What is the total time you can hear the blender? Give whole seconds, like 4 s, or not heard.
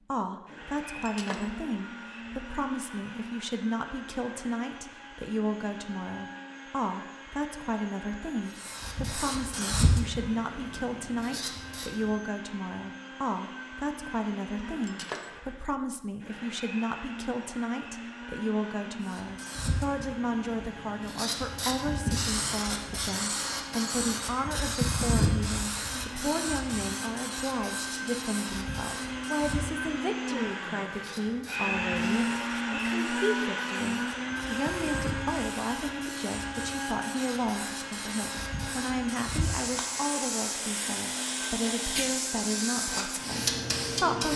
44 s.